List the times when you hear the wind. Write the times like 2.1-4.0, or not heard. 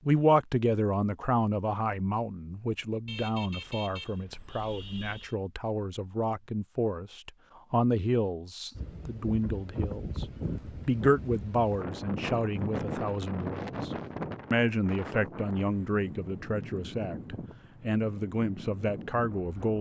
8.8-19.7.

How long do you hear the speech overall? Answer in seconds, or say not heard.
19 s.